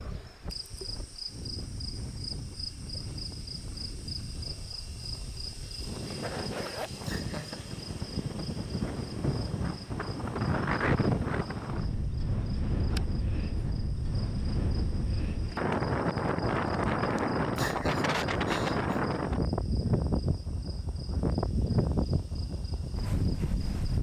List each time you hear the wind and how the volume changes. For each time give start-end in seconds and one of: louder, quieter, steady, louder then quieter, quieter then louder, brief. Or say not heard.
0.0-23.9 louder.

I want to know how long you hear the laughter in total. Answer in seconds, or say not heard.
2 s.